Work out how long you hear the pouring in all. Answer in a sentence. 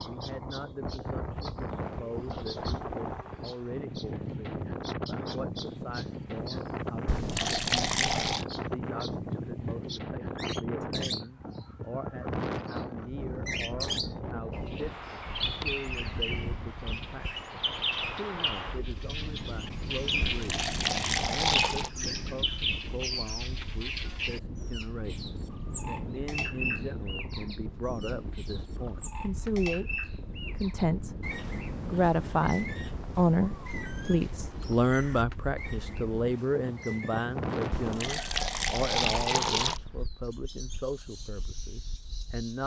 You can hear the pouring for 5 seconds altogether.